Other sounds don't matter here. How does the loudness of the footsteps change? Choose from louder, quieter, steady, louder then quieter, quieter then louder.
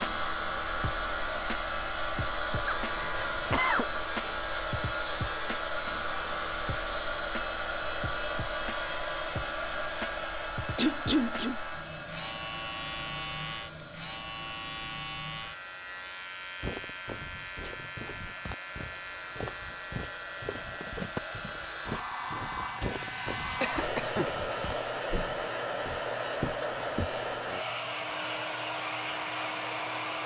louder.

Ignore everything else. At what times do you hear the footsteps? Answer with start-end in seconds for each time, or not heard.
16.6-27.1.